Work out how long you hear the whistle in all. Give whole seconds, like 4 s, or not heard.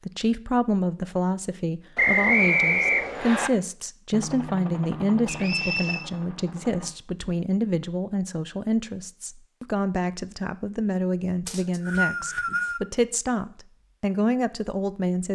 4 s.